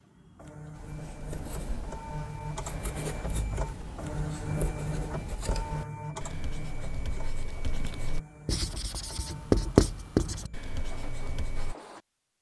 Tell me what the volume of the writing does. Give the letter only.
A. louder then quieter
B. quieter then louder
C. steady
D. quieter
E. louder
E.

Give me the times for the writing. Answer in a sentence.
The writing can be heard from 0.8 to 11.8 s.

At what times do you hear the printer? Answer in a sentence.
You can hear the printer from 0.0 to 12.3 s.